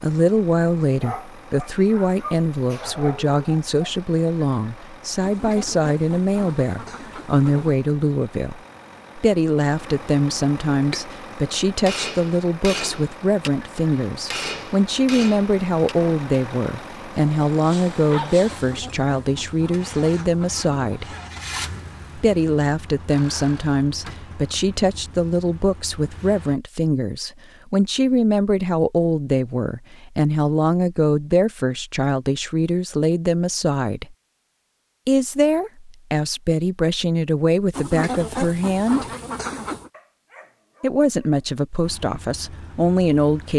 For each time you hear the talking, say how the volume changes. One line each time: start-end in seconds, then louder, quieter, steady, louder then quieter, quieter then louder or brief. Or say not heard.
0.0-21.1 steady
22.1-34.1 steady
35.0-39.0 steady
40.8-43.5 brief.